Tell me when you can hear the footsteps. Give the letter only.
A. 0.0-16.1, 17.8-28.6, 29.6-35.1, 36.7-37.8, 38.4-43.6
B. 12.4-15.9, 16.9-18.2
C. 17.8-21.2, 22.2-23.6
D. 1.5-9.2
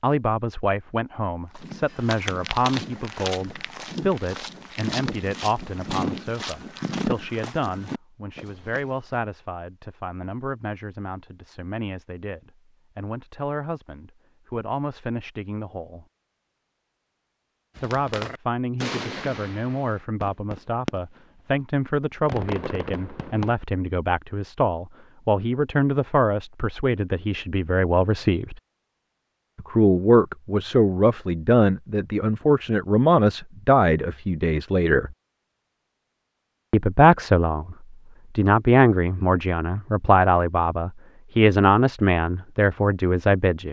D.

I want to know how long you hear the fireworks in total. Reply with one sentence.
The fireworks can be heard for 5 seconds in total.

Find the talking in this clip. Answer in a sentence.
You can hear the talking from 0.0 to 16.1 s, from 17.8 to 28.6 s, from 29.6 to 35.1 s, from 36.7 to 37.8 s and from 38.4 to 43.6 s.